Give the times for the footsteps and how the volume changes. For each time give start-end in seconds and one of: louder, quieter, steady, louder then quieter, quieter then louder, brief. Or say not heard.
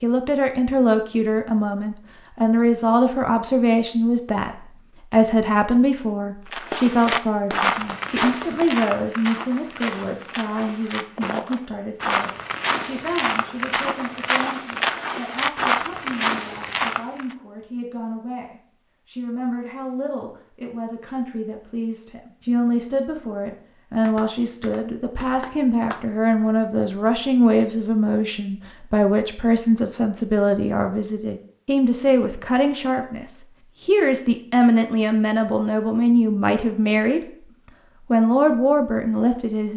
6.5-17.4 quieter then louder.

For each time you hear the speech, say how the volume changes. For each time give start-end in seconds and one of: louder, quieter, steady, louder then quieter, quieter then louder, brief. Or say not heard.
0.0-37.4 quieter then louder
38.1-39.7 brief.